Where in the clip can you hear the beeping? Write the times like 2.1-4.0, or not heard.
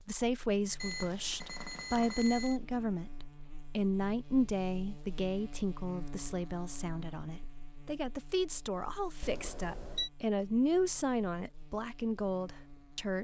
0.8-2.6, 9.2-10.1.